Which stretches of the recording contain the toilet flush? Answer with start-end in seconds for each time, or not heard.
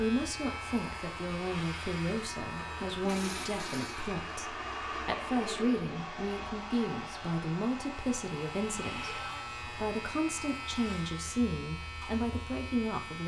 2.9-4.1.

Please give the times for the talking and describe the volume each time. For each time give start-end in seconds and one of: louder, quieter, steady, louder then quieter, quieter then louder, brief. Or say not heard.
0.0-13.2 steady.